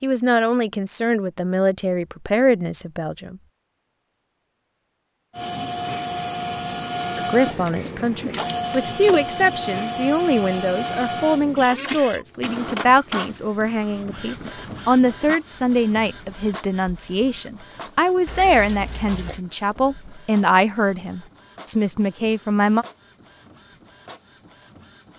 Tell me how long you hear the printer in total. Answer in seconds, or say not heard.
20 s.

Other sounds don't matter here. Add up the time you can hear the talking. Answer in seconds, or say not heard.
19 s.